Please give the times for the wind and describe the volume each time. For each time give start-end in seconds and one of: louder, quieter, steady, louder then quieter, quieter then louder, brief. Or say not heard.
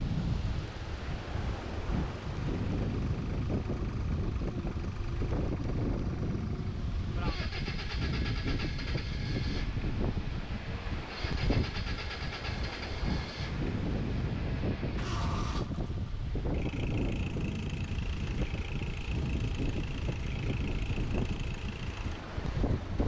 0.0-23.0 steady.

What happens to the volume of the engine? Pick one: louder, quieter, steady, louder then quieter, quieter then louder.
steady.